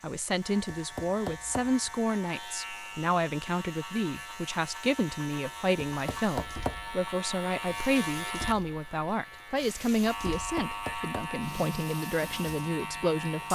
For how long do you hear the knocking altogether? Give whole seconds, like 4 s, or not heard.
3 s.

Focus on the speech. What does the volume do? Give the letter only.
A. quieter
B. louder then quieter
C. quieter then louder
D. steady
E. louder
D.